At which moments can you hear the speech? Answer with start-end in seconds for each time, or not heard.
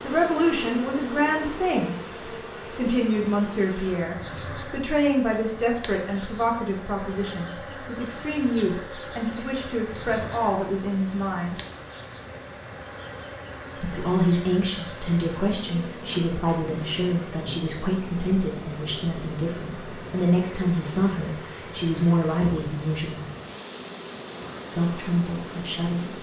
0.0-1.9, 2.8-11.6, 13.8-23.3, 24.7-26.1.